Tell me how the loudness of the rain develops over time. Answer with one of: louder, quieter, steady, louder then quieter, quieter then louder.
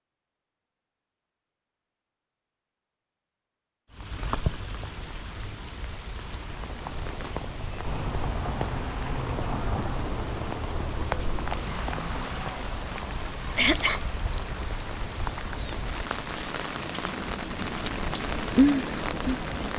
louder.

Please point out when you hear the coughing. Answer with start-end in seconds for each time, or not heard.
13.1-14.0.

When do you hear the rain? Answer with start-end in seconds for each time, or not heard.
3.9-19.7.